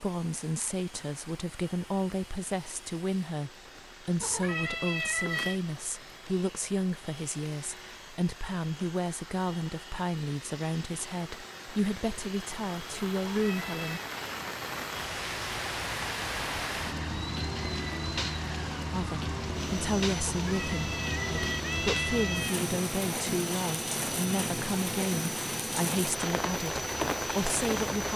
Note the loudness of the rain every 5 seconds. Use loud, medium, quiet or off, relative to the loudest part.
quiet, quiet, medium, loud, loud, loud.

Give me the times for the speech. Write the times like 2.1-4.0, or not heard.
0.0-14.0, 18.9-28.1.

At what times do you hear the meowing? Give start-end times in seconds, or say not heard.
4.2-5.6, 13.2-14.1, 20.2-22.6.